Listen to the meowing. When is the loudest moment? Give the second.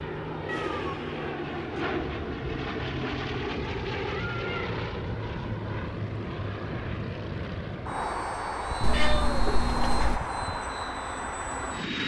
9 s.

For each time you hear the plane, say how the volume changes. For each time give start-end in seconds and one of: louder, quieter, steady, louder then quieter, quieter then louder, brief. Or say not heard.
0.0-12.0 steady.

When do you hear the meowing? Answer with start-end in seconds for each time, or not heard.
0.5-1.3, 4.3-4.8, 8.8-10.2.